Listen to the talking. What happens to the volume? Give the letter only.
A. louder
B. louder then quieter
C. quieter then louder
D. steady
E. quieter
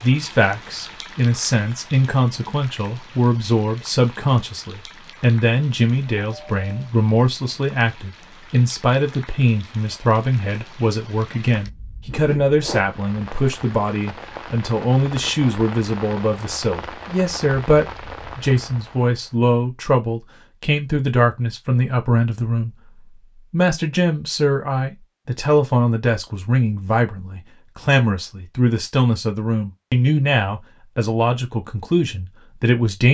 D.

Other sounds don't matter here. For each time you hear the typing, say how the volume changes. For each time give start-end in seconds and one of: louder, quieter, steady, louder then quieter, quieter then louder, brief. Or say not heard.
not heard.